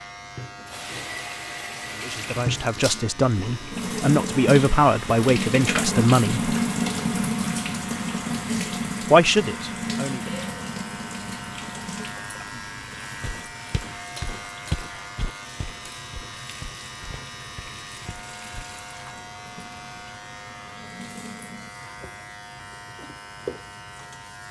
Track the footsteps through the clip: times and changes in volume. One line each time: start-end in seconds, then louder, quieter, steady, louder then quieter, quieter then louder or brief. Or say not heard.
13.2-18.6 louder then quieter.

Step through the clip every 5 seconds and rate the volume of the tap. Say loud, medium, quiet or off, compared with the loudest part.
medium, loud, medium, quiet, quiet.